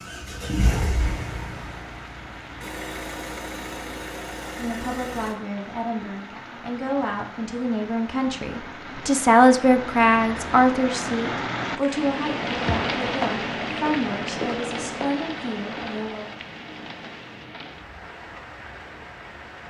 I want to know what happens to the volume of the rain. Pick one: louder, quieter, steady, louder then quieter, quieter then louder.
louder then quieter.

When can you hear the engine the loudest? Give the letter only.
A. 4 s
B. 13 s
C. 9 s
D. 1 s
D.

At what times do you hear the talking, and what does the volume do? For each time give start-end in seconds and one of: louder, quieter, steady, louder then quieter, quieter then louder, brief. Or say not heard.
4.5-16.3 louder then quieter.